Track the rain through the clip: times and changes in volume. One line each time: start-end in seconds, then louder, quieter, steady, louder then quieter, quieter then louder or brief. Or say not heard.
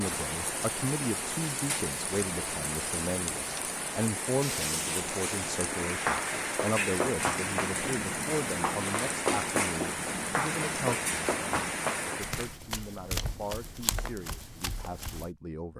0.0-12.6 steady.